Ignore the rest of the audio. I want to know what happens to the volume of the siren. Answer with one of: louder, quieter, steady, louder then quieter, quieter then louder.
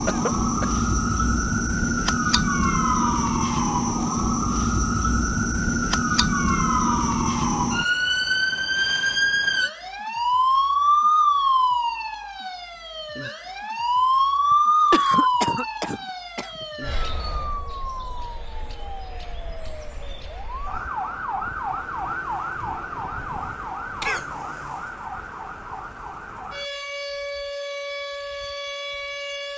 quieter.